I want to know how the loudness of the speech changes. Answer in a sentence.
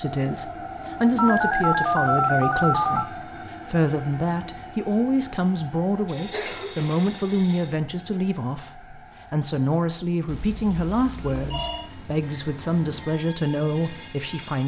The volume of the speech stays about the same.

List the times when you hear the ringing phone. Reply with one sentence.
You can hear the ringing phone from 1.1 to 3.0 s, from 6.0 to 7.7 s and from 10.2 to 11.9 s.